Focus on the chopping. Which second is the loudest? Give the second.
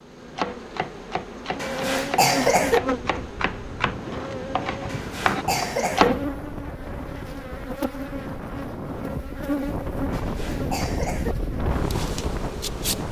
6 s.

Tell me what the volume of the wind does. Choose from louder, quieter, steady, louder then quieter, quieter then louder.
louder.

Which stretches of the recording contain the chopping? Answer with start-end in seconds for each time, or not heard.
0.2-6.2.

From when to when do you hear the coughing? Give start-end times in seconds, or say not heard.
1.6-2.8, 4.8-6.1, 10.1-11.3.